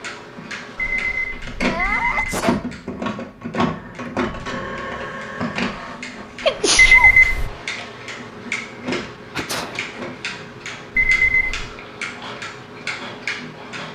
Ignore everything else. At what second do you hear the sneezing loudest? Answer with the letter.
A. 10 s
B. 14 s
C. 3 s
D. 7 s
D.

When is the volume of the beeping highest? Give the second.
7 s.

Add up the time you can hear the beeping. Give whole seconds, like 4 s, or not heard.
3 s.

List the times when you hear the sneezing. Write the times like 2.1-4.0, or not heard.
1.6-2.6, 6.4-7.1, 9.3-9.8.